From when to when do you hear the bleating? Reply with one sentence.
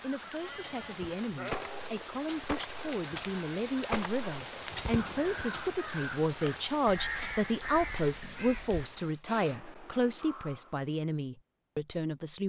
The bleating can be heard from 0.2 to 1.8 s.